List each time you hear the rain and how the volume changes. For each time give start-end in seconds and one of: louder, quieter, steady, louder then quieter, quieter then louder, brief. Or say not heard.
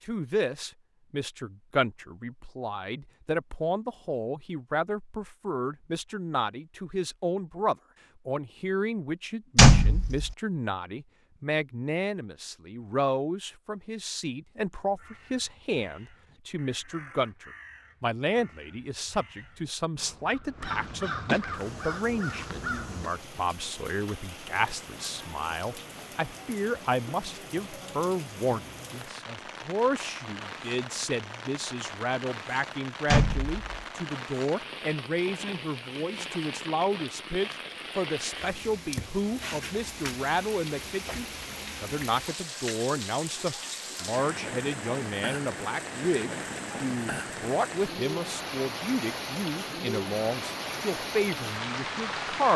21.5-52.5 louder.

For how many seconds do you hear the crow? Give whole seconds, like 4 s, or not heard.
8 s.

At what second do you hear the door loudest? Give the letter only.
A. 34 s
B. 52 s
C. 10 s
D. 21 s
C.